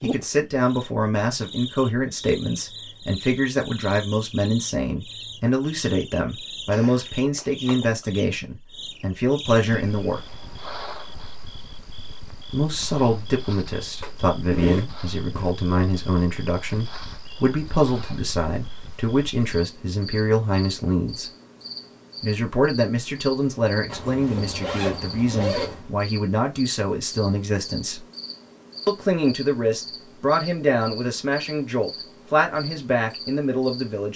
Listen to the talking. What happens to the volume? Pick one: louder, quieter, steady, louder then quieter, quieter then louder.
steady.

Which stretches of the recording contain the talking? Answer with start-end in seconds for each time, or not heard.
0.0-10.2, 12.5-21.3, 22.2-28.1, 28.9-34.1.